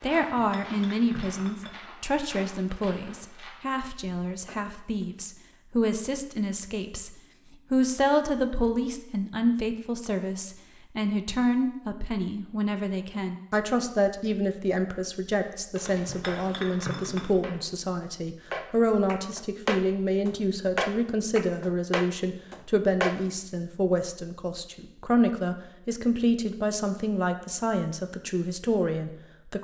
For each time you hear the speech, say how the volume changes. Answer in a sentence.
You can hear the speech from 0.0 to 29.5 s, at a steady volume.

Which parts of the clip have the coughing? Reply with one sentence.
The coughing can't be heard in this clip.